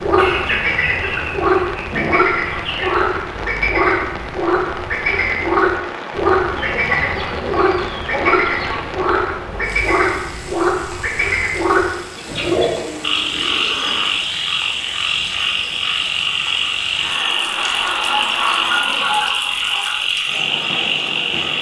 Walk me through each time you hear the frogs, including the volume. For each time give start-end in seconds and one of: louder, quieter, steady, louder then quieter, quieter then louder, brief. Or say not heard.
0.0-21.5 steady.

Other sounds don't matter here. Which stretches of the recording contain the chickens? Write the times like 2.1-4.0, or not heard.
0.1-3.0, 6.5-8.9, 12.2-14.1, 17.6-20.0.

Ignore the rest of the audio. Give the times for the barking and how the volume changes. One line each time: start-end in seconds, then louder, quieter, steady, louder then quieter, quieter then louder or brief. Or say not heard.
not heard.